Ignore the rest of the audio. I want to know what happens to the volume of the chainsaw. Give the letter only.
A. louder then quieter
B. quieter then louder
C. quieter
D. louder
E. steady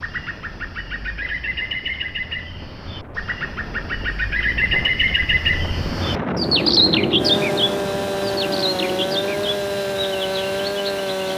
E.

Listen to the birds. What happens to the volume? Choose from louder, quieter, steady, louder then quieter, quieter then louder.
louder then quieter.